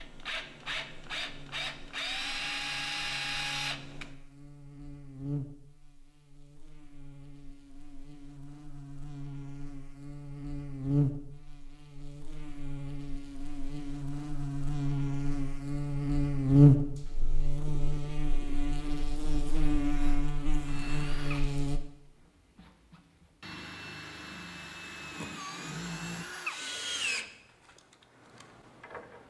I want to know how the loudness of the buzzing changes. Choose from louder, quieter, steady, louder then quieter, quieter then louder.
louder then quieter.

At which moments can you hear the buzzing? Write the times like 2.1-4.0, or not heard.
0.0-21.8.